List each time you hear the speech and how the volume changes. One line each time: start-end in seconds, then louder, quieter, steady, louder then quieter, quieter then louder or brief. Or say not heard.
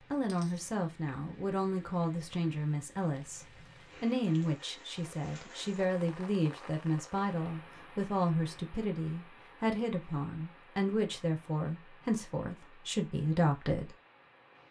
0.1-13.9 steady.